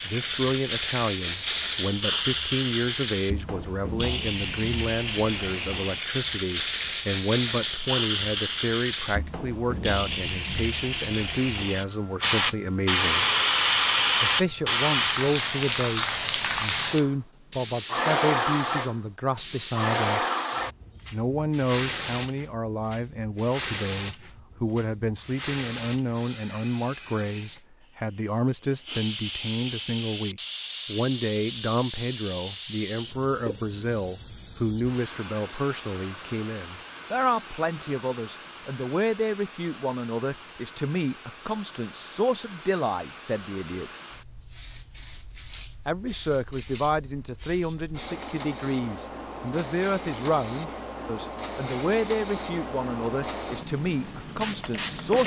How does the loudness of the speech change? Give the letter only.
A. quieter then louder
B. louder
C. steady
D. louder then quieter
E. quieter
C.